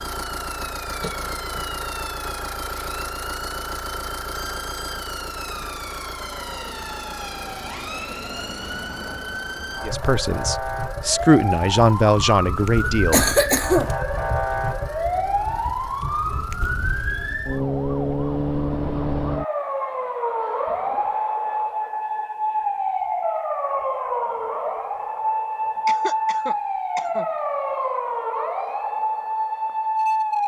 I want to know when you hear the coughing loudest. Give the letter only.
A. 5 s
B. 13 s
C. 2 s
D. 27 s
B.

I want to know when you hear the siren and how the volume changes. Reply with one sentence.
The siren can be heard from 0.0 to 30.4 s, getting louder.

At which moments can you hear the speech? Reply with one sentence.
You can hear the speech from 9.8 to 13.3 s.